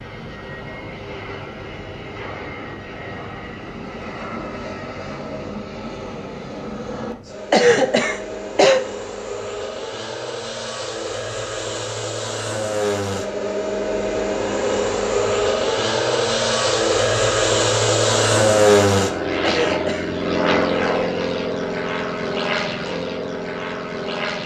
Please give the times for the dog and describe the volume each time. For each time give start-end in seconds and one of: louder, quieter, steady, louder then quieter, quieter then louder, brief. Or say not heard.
not heard.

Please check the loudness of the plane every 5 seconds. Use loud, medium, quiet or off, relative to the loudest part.
quiet, quiet, medium, loud, medium.